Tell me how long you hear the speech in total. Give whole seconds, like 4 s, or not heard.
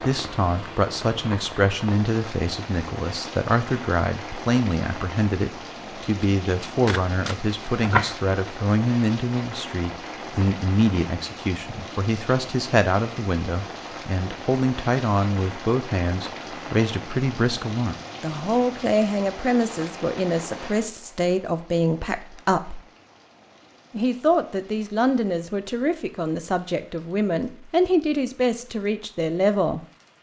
29 s.